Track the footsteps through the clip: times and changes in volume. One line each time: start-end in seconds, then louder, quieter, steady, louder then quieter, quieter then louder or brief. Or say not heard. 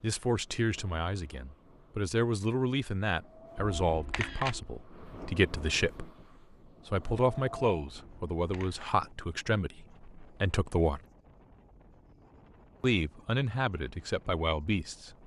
not heard.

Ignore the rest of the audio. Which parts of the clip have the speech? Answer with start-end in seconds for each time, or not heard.
0.0-6.1, 6.8-11.0, 12.8-15.2.